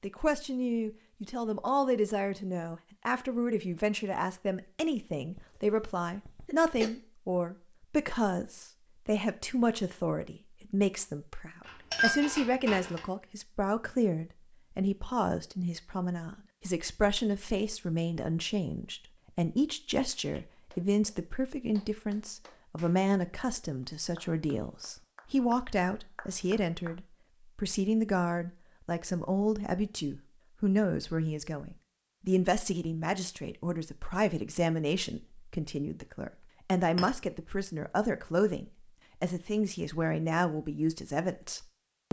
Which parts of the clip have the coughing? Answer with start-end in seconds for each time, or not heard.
5.3-6.9.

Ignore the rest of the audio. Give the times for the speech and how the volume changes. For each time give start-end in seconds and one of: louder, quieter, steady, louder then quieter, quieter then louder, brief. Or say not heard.
0.0-42.0 steady.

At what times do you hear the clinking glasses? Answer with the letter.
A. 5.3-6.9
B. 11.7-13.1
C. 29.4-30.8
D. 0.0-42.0
B.